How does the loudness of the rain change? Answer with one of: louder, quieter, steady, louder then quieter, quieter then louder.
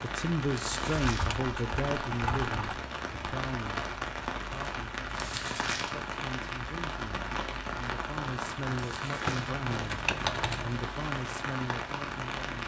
steady.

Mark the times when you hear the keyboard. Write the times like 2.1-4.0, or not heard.
0.8-2.8, 9.2-10.8.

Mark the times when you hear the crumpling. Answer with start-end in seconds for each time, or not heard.
0.5-1.4, 5.0-6.0, 8.7-9.6.